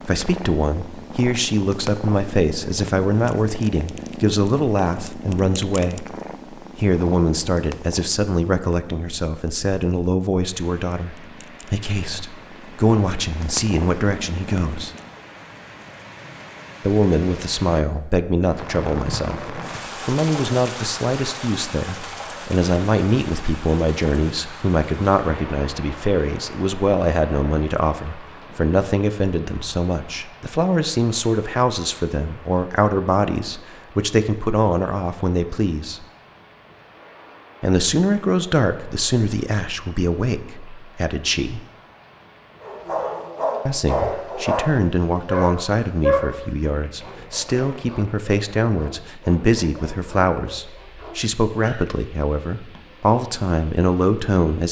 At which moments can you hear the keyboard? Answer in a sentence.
The keyboard can't be heard in this clip.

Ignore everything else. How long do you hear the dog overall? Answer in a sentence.
You can hear the dog for 9 seconds altogether.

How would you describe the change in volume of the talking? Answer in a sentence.
The volume of the talking stays about the same.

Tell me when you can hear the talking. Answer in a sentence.
You can hear the talking from 0.1 to 6.2 s, from 6.8 to 14.9 s, from 16.8 to 36.0 s, from 37.6 to 41.6 s and from 43.6 to 54.6 s.